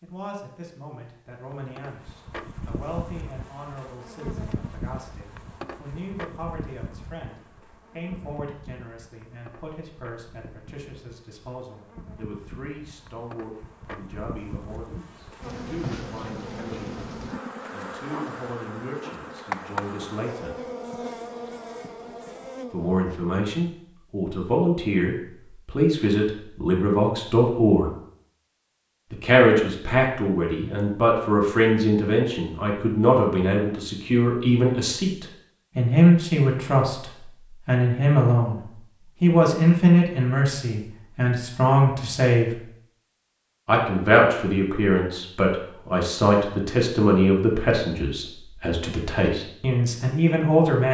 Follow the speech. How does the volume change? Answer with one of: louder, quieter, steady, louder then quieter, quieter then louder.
louder.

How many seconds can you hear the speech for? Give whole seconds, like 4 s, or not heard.
46 s.